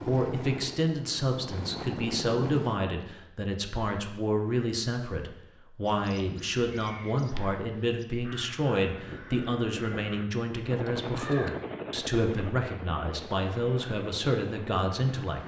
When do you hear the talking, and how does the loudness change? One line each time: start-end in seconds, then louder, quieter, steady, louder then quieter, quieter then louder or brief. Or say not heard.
0.0-15.4 steady.